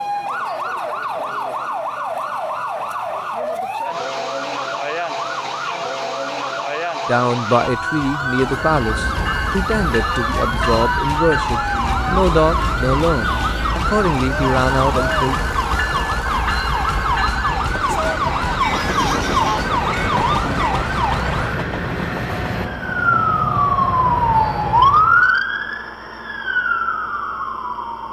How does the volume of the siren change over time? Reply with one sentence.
The volume of the siren goes up.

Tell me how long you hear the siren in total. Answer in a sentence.
You can hear the siren for 28 seconds altogether.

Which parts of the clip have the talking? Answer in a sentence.
You can hear the talking from 7.0 to 15.4 s.